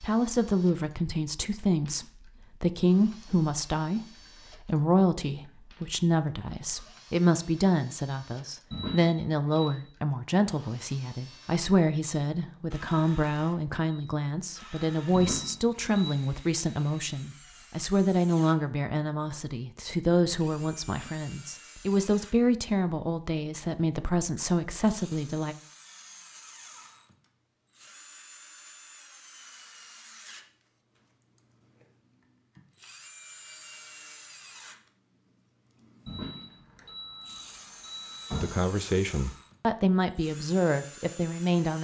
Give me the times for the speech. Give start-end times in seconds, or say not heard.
0.0-25.6, 38.4-41.7.